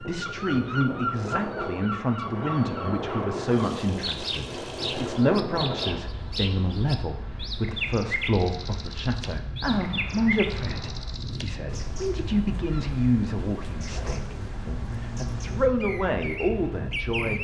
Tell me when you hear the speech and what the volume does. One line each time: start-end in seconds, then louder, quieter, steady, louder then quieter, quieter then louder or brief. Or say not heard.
0.0-17.3 steady.